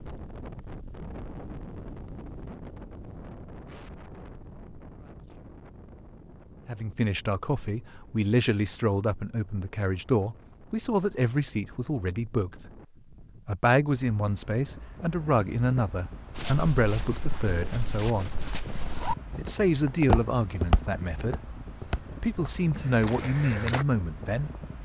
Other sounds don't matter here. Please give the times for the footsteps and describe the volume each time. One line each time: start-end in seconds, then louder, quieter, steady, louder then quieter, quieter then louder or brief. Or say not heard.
16.4-23.9 louder then quieter.